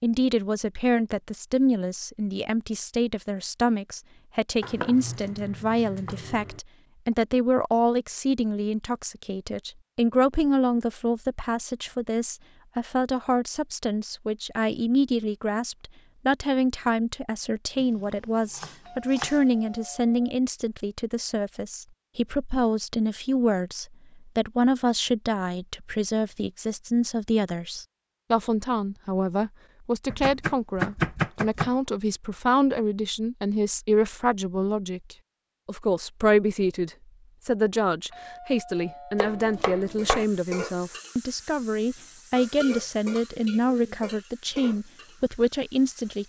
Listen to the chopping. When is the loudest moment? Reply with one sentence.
The volume of the chopping peaks at 31 seconds.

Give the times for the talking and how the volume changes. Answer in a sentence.
You can hear the talking from 0.0 to 46.2 s, at a steady volume.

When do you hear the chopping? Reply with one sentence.
The chopping can be heard from 4.6 to 6.6 s, from 17.8 to 19.4 s, from 30.1 to 31.7 s and from 39.1 to 40.2 s.